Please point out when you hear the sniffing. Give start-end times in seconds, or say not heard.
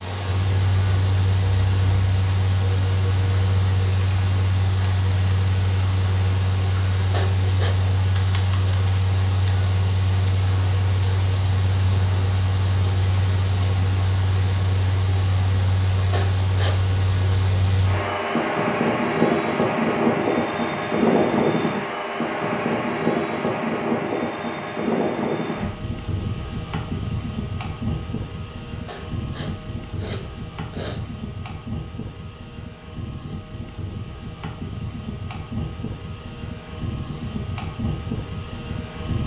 7.1-7.8, 16.1-16.8, 28.9-31.0.